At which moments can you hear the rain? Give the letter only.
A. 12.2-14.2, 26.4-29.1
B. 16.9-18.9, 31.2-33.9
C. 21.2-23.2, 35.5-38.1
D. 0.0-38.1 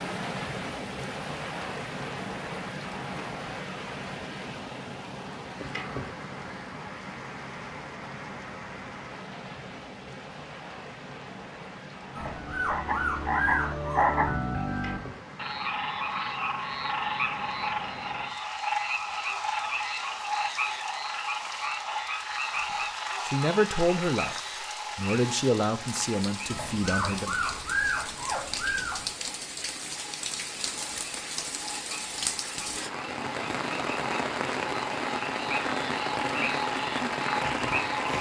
D.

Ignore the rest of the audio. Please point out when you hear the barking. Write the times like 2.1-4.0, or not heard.
12.2-14.2, 26.4-29.1.